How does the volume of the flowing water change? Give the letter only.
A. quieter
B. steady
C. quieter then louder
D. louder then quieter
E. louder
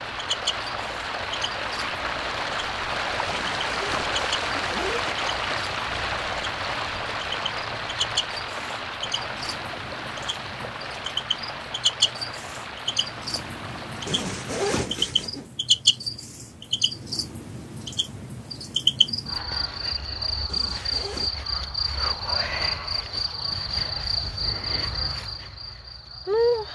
A.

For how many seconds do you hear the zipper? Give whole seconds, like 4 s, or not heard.
4 s.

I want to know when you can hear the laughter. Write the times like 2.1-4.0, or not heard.
not heard.